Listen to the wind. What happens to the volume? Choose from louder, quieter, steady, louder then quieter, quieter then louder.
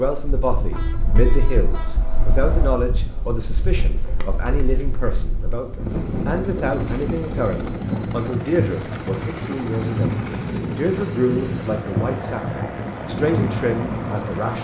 louder.